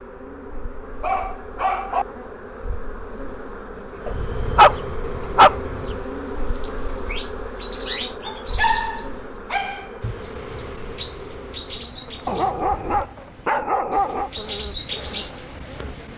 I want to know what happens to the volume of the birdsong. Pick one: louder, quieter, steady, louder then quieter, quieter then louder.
quieter then louder.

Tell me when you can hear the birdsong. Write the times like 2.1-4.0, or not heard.
6.5-16.1.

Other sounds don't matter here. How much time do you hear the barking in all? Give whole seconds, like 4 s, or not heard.
7 s.